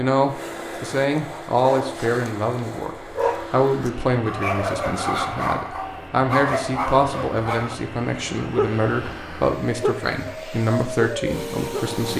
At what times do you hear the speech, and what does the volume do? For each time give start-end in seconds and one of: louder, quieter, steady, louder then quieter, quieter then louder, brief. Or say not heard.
0.0-12.1 steady.